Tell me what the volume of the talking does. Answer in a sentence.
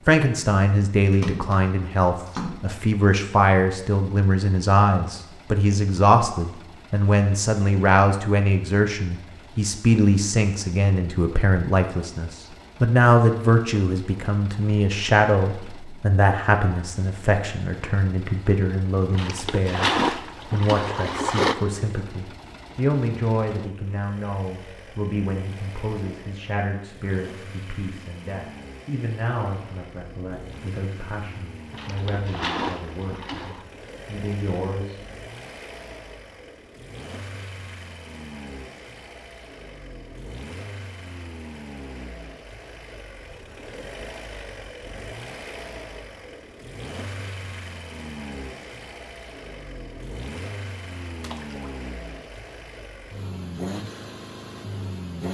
The volume of the talking goes down.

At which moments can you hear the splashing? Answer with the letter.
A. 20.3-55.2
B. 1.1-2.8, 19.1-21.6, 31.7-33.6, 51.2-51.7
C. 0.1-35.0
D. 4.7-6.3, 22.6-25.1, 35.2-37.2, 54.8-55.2
B.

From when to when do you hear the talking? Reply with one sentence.
The talking can be heard from 0.1 to 35.0 s.